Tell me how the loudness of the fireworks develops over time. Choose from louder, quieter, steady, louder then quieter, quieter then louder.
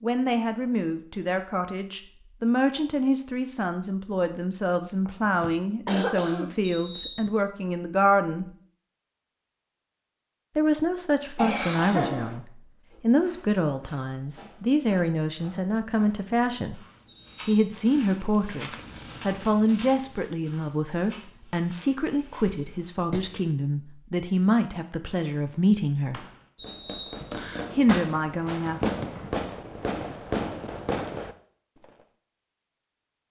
louder.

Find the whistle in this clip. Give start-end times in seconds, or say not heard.
6.6-7.3, 17.1-17.9, 26.6-27.7.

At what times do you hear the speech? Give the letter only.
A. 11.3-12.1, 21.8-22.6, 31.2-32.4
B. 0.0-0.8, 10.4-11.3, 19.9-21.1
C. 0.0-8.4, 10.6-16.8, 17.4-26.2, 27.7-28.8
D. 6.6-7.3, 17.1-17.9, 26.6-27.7
C.